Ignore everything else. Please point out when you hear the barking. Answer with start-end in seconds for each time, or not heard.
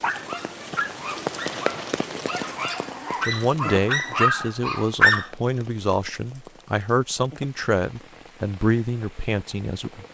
0.0-5.2.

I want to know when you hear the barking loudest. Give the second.
5 s.